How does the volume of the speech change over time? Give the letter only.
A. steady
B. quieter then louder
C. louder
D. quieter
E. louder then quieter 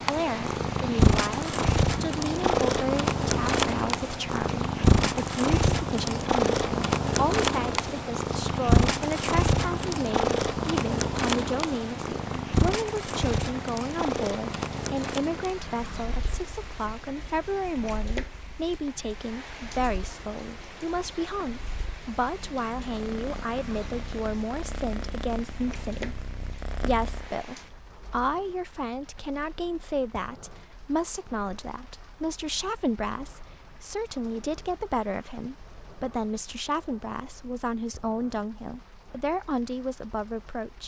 A.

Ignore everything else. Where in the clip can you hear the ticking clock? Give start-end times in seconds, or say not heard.
not heard.